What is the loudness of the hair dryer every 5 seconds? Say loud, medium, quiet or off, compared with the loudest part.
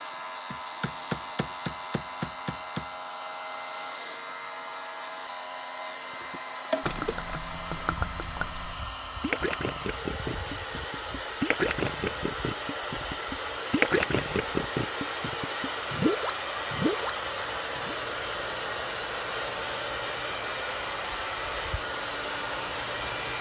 medium, medium, loud, loud, loud.